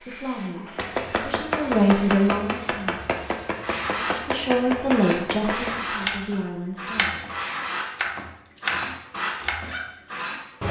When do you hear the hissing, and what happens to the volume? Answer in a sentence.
You can hear the hissing from 0.0 to 10.6 s, getting louder.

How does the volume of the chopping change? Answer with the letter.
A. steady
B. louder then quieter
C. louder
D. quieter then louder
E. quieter
A.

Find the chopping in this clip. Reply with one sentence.
The chopping can be heard from 0.8 to 10.4 s.